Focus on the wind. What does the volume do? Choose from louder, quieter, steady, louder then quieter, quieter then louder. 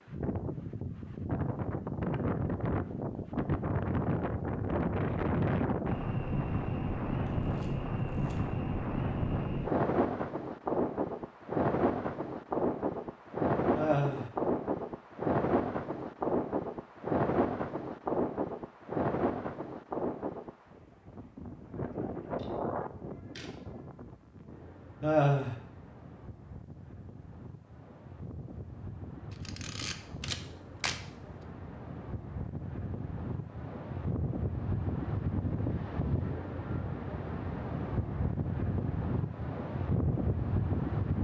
quieter then louder.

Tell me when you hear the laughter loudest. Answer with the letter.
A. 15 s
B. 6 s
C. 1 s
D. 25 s
D.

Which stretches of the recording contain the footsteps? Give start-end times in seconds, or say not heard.
not heard.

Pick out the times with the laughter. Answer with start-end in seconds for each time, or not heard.
13.8-14.3, 25.0-25.6.